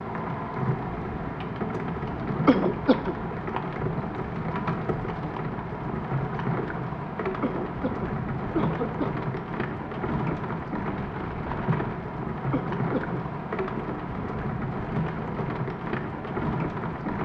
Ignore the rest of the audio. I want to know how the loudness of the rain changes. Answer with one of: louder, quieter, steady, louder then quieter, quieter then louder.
steady.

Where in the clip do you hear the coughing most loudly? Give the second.
3 s.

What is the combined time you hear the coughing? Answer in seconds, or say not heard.
3 s.